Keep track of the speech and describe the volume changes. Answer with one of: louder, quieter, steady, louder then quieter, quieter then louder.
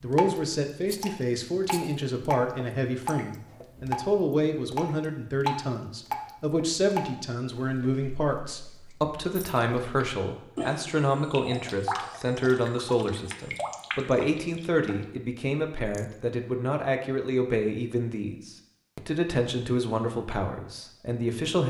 steady.